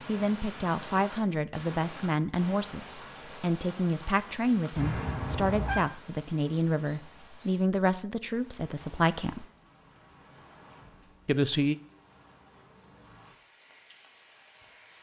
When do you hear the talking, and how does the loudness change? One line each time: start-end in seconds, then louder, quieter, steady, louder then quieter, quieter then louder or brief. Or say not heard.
0.1-9.4 steady
11.2-11.8 brief.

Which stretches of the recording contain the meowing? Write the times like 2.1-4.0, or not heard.
4.8-5.8.